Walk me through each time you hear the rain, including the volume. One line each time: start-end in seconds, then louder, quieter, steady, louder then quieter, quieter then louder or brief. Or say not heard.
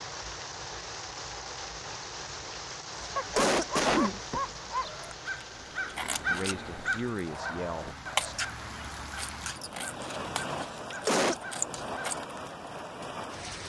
0.0-13.6 quieter then louder.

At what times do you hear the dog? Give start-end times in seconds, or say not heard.
3.1-5.1.